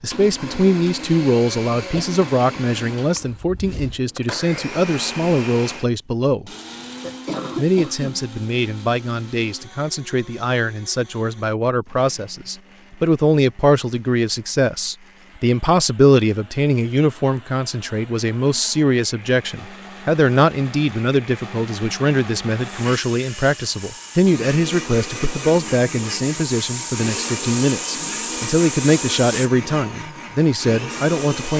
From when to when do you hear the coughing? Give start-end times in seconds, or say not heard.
6.8-8.2.